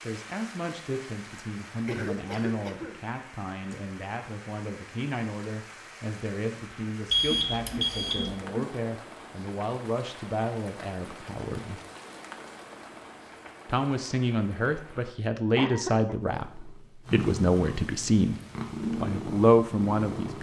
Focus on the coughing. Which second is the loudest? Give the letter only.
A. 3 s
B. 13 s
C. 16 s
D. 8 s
C.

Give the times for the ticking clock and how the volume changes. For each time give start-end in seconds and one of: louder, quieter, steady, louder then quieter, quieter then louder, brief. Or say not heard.
not heard.